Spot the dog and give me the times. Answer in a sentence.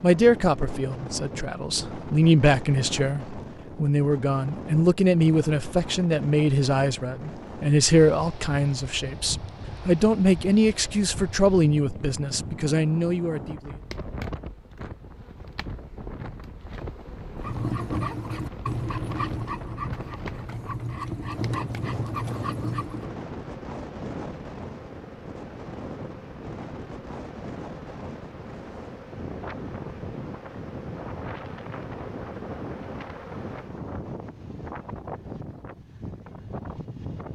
You can hear the dog from 17.4 to 23.1 s.